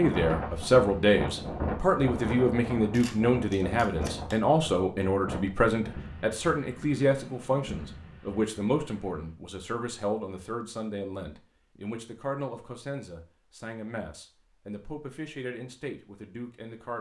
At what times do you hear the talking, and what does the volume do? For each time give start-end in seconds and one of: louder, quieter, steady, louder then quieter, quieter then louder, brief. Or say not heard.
0.0-16.9 quieter.